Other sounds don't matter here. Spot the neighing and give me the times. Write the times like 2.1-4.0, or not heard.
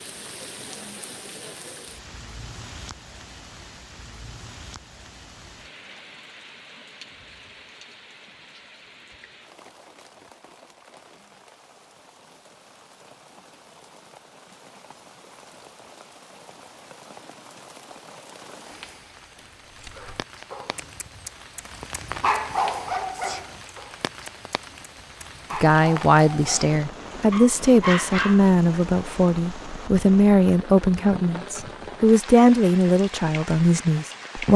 not heard.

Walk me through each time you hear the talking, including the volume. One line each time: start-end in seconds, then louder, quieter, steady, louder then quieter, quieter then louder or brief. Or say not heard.
25.6-34.5 steady.